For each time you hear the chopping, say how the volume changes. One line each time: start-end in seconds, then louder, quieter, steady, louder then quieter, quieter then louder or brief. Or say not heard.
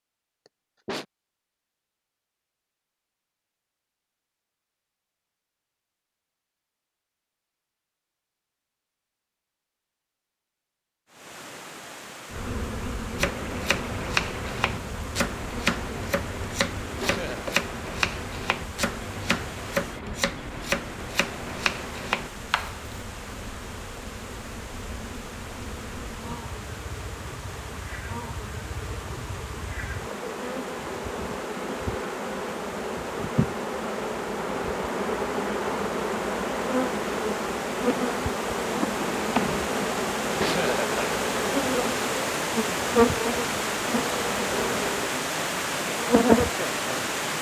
13.2-22.9 steady.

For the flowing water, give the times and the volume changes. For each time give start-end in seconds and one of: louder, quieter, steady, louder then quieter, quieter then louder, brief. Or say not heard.
11.1-47.3 louder.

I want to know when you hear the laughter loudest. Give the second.
41 s.